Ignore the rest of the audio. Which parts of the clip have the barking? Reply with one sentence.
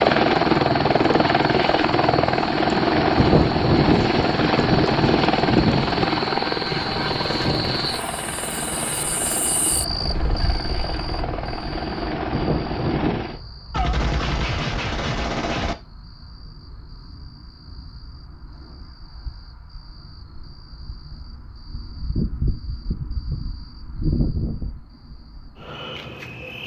You can't hear the barking here.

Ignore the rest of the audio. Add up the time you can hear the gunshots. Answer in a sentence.
The gunshots can be heard for 2 seconds in total.